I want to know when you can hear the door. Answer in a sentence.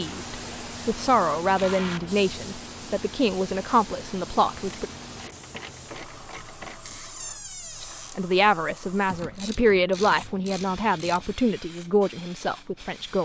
You can hear the door from 6.8 to 8.2 s.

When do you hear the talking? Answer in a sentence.
You can hear the talking from 0.0 to 4.8 s and from 7.8 to 13.1 s.